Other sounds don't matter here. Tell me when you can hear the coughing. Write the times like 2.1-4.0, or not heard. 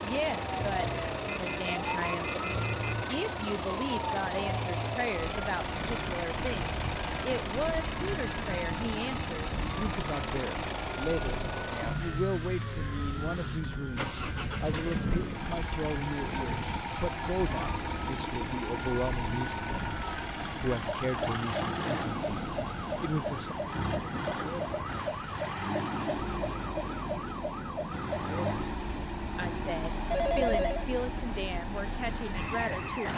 not heard.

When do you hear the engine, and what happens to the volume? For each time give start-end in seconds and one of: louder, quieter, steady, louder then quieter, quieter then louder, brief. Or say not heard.
0.0-33.1 steady.